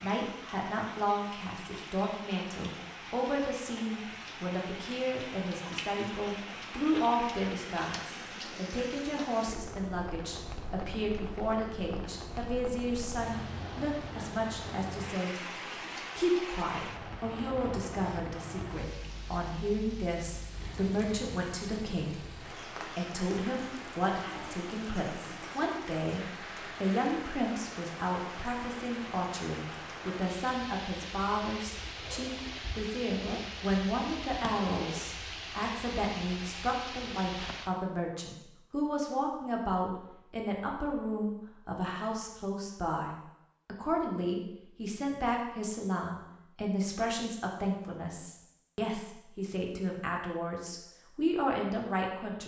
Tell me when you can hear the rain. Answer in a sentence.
The rain can be heard from 0.0 to 37.7 s.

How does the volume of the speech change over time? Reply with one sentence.
The loudness of the speech stays about the same.